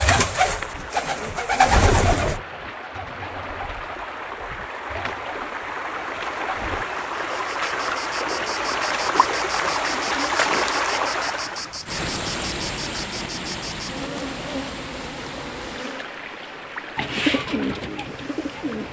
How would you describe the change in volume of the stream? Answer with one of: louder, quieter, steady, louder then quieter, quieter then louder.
louder then quieter.